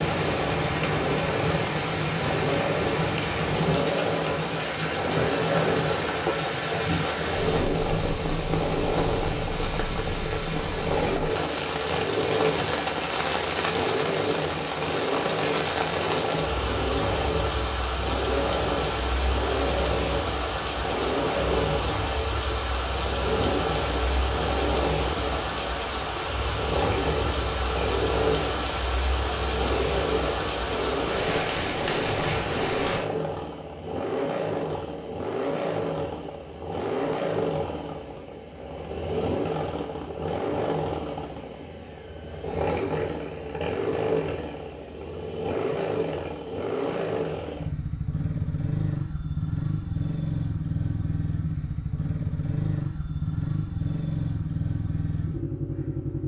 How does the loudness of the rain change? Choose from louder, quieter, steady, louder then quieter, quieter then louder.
steady.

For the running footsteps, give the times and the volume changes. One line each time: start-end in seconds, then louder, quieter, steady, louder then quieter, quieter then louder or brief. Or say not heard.
not heard.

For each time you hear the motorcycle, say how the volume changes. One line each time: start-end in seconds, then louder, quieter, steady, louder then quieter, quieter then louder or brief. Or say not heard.
0.0-56.2 steady.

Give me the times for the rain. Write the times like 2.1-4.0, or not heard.
0.0-33.0.